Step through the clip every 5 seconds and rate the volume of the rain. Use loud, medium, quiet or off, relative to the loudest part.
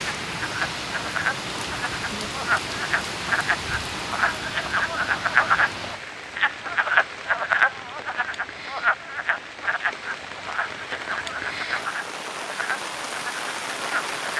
loud, medium, loud.